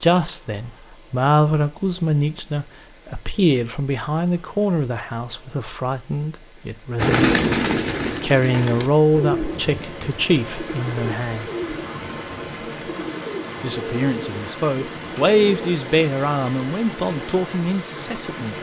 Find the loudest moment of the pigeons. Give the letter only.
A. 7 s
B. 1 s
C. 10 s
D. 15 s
A.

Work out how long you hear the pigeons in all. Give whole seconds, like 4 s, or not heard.
9 s.